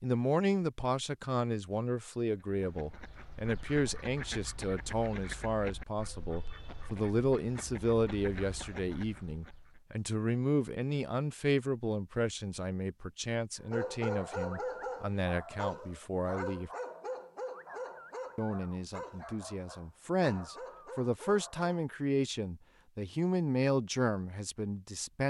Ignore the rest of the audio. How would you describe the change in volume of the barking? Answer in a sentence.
The loudness of the barking goes down.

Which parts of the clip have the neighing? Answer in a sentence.
The neighing can't be heard in this clip.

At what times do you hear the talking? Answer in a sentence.
You can hear the talking from 0.0 to 16.7 s and from 18.4 to 25.2 s.